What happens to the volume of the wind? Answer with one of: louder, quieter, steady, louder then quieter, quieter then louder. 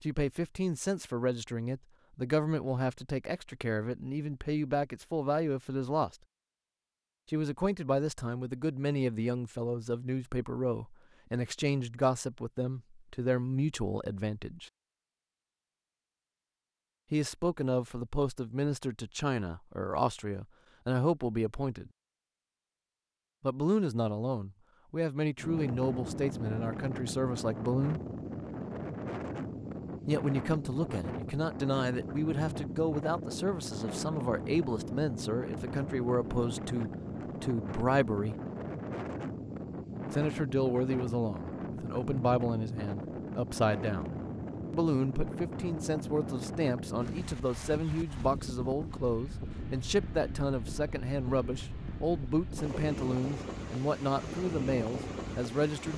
steady.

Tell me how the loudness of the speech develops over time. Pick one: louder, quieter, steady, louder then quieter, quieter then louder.
steady.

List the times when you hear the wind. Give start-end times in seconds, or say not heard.
25.4-55.9.